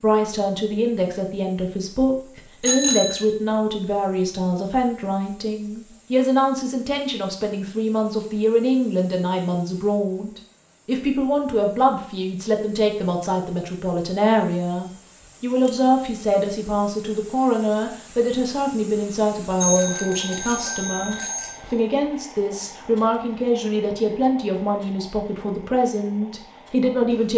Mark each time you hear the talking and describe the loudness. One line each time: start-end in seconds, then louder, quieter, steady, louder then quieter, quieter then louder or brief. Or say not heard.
0.0-27.3 steady.